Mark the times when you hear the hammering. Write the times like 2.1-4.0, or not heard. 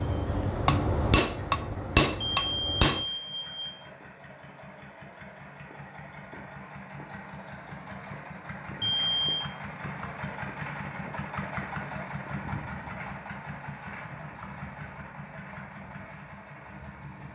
0.0-3.0.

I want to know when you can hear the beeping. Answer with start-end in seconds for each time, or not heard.
2.2-3.9, 8.8-9.5.